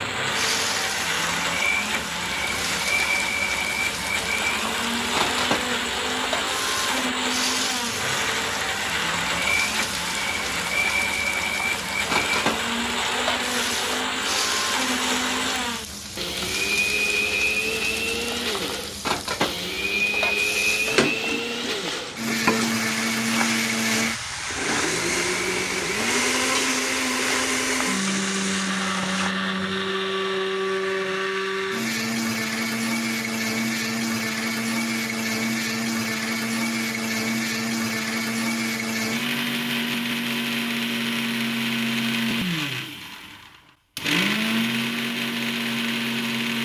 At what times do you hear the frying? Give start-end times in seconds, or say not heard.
0.2-29.4.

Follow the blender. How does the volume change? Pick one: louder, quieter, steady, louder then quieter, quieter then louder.
steady.